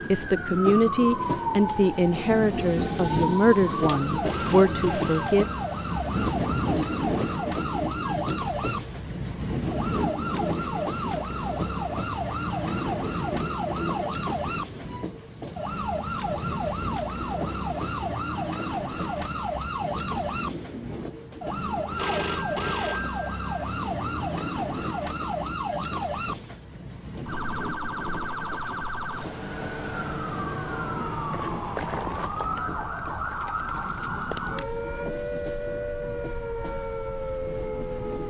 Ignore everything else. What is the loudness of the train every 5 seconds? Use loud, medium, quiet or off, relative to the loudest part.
loud, loud, loud, medium, medium, medium, medium, medium.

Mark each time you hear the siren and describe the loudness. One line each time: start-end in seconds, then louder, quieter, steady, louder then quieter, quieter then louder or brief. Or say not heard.
0.0-38.2 steady.